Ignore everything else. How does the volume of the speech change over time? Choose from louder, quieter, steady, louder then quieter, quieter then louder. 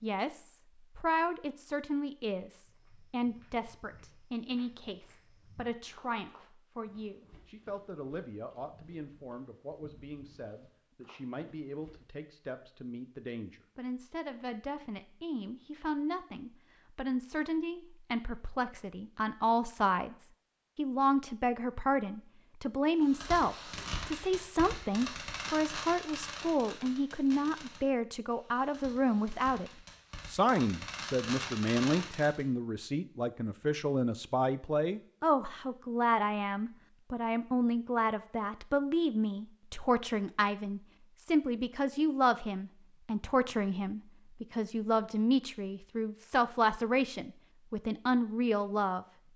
louder.